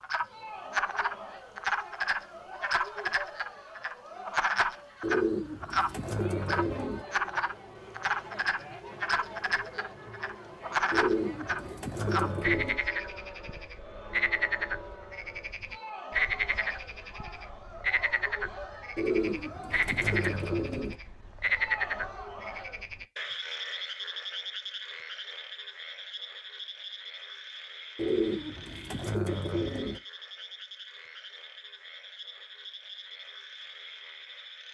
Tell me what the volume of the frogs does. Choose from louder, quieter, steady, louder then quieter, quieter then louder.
quieter.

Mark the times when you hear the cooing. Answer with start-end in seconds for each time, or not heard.
5.0-7.0, 10.9-12.8, 18.9-20.9, 27.9-30.0.